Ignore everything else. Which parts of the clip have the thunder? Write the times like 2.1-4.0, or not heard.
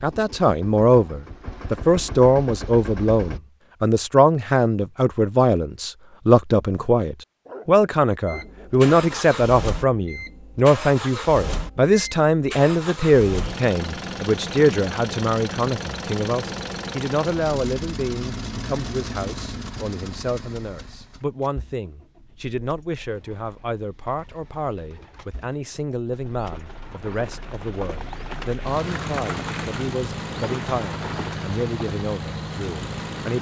not heard.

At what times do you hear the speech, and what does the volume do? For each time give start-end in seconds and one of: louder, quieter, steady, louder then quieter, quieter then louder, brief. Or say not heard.
0.0-33.3 quieter.